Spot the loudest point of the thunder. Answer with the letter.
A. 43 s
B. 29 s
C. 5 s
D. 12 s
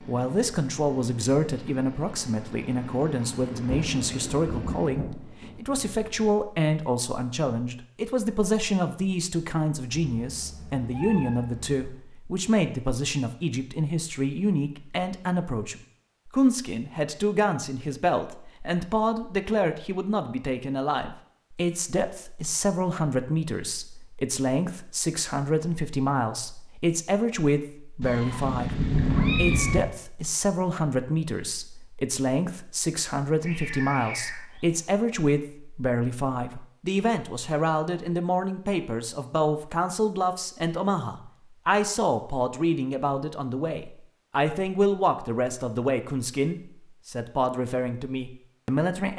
B.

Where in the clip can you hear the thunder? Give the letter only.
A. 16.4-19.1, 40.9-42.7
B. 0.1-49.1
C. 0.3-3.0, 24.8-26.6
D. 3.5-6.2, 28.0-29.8
D.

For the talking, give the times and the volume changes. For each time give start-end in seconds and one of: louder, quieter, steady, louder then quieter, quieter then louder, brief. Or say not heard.
0.1-49.1 steady.